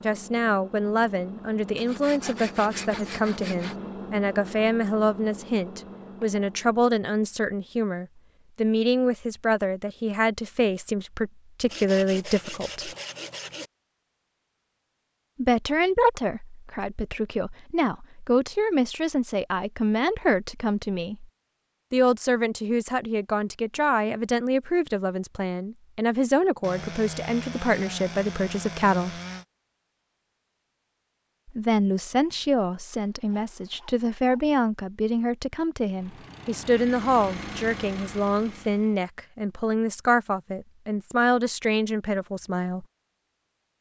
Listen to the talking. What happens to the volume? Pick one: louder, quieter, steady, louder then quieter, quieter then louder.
steady.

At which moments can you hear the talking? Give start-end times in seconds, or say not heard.
0.0-12.9, 15.3-21.2, 21.9-29.1, 31.5-42.9.